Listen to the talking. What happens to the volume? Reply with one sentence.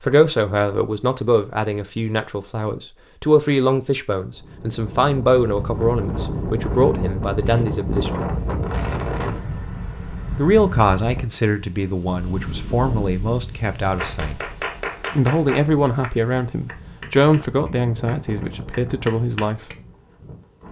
The loudness of the talking stays about the same.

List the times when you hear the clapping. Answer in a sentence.
The clapping can be heard from 13.9 to 19.8 s.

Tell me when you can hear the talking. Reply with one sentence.
You can hear the talking from 0.0 to 8.2 s, from 10.3 to 14.3 s and from 15.2 to 19.6 s.